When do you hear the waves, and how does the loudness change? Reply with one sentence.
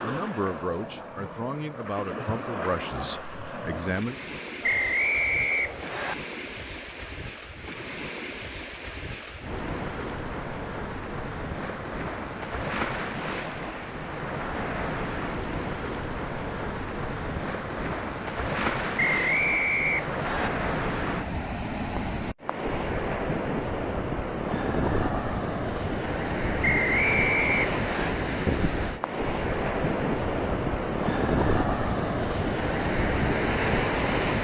You can hear the waves from 0.0 to 34.4 s, getting louder.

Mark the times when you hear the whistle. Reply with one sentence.
You can hear the whistle from 4.6 to 6.2 s, from 18.9 to 20.5 s and from 26.6 to 28.1 s.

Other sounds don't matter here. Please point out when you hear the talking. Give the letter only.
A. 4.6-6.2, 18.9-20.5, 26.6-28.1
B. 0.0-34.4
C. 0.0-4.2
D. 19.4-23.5
C.